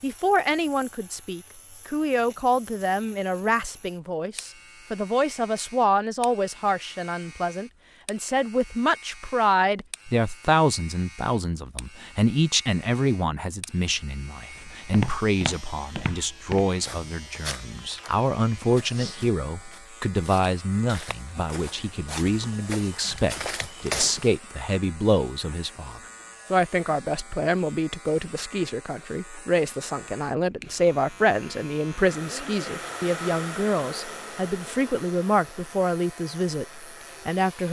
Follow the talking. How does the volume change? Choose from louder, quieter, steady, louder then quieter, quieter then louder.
steady.